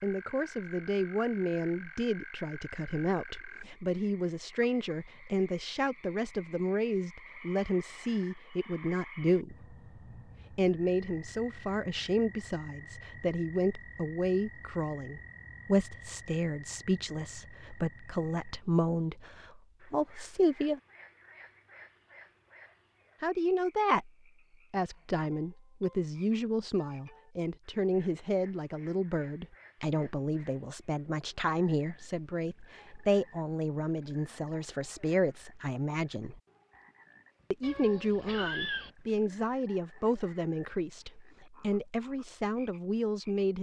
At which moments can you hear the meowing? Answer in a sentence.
The meowing can be heard from 37.6 to 38.9 s.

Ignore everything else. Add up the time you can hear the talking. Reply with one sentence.
The talking can be heard for 39 seconds in total.